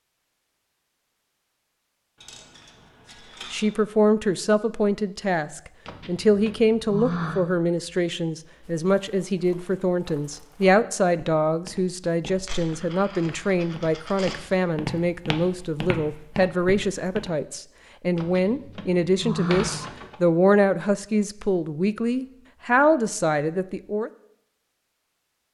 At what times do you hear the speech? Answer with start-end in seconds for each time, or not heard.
3.5-24.1.